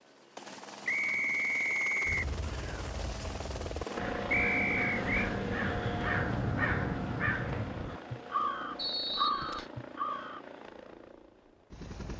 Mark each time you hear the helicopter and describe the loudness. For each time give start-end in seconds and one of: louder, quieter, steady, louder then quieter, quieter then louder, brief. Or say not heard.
0.0-12.1 louder then quieter.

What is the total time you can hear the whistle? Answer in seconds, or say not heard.
3 s.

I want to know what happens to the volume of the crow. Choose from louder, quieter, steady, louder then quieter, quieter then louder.
louder.